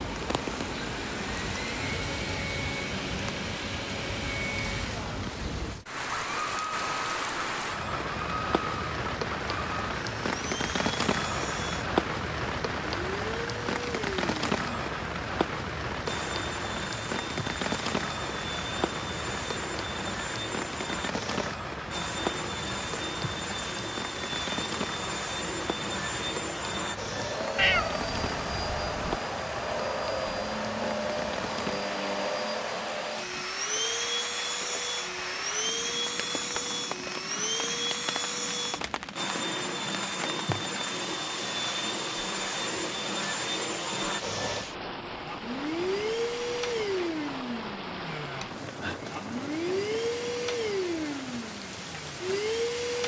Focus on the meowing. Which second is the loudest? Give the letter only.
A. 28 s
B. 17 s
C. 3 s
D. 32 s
A.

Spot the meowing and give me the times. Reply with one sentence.
The meowing can be heard from 27.6 to 29.2 s.